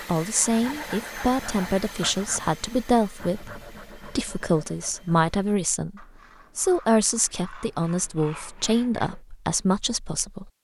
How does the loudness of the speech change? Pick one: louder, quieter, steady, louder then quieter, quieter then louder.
steady.